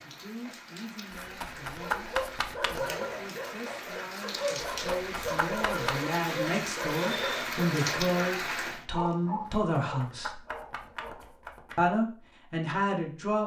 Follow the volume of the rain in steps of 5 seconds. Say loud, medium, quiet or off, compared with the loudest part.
medium, loud, off.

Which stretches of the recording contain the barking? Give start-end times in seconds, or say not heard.
1.8-11.3.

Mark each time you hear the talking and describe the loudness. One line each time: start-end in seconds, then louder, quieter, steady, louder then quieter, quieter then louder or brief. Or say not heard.
0.0-10.4 louder
11.8-13.4 brief.